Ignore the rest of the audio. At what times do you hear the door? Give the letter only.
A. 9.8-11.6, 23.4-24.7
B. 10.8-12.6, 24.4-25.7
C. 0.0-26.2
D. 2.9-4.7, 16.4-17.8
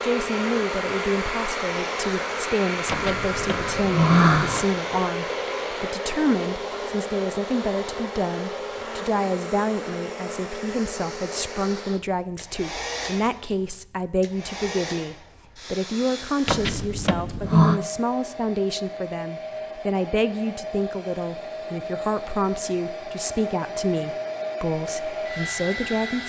D.